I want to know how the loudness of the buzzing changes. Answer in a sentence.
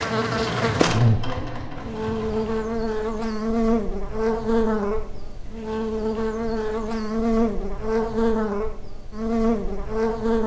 The volume of the buzzing stays about the same.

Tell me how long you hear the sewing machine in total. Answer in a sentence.
The sewing machine can be heard for 3 seconds in total.